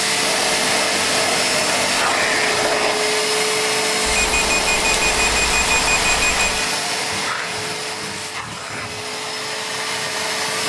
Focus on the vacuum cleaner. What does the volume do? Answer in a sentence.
The loudness of the vacuum cleaner goes down.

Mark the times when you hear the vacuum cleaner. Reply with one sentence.
The vacuum cleaner can be heard from 0.0 to 10.6 s.